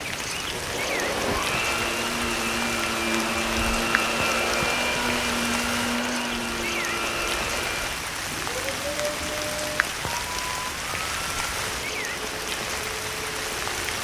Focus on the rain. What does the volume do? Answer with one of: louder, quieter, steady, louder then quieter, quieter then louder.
steady.